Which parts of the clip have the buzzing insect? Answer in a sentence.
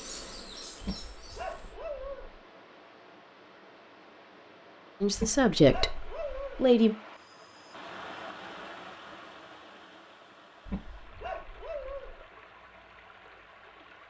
You can hear the buzzing insect from 0.0 to 1.8 s.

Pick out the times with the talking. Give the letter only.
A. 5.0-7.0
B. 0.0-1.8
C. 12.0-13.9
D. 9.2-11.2
A.